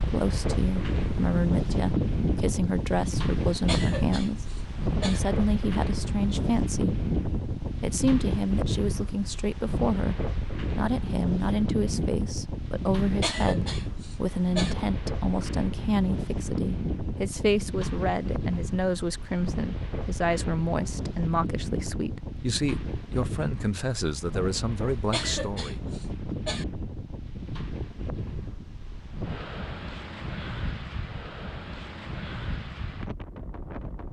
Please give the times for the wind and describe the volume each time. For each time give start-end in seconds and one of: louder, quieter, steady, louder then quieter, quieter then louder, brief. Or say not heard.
0.0-34.0 quieter.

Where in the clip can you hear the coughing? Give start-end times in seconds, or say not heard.
3.5-5.2, 13.0-14.8, 24.9-26.6.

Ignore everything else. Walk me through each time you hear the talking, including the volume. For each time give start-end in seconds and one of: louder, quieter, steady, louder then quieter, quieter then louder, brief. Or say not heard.
0.0-7.0 steady
7.8-25.8 steady.